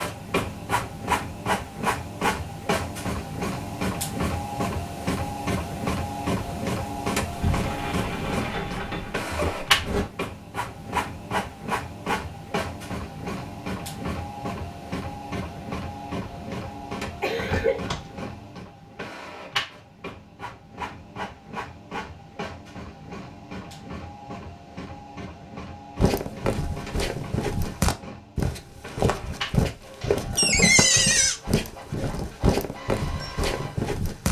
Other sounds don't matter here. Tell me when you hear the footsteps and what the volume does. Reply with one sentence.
The footsteps can be heard from 25.9 to 34.2 s, at a steady volume.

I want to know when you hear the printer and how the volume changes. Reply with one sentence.
You can hear the printer from 0.0 to 34.0 s, getting quieter.